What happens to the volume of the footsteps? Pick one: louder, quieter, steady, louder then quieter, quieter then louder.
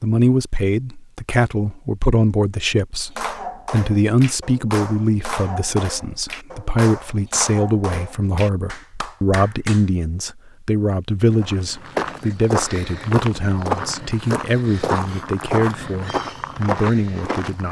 steady.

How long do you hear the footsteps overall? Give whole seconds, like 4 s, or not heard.
6 s.